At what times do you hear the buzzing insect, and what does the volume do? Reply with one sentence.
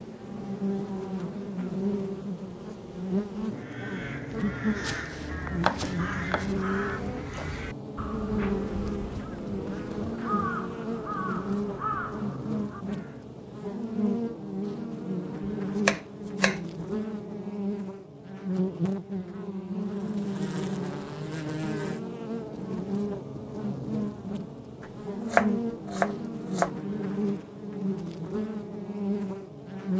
The buzzing insect can be heard from 0.0 to 29.9 s, at a steady volume.